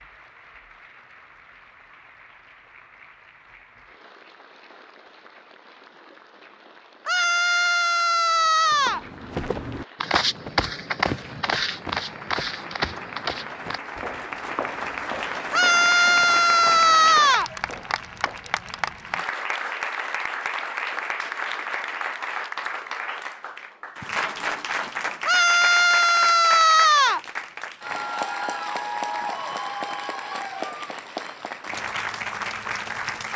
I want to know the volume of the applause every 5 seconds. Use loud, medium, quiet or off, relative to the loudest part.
quiet, quiet, medium, loud, loud, loud, loud.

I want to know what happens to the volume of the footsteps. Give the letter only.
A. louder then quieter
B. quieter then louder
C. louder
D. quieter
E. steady
D.